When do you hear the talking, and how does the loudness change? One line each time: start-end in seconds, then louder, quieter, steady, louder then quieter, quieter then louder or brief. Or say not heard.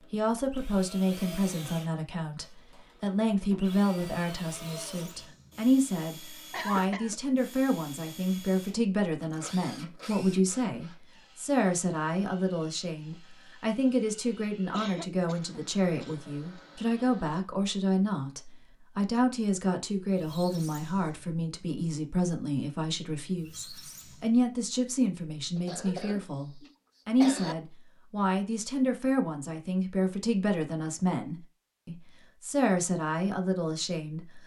0.1-34.4 steady.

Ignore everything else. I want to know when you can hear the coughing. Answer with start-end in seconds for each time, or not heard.
6.5-7.2, 14.7-16.4, 25.6-27.6.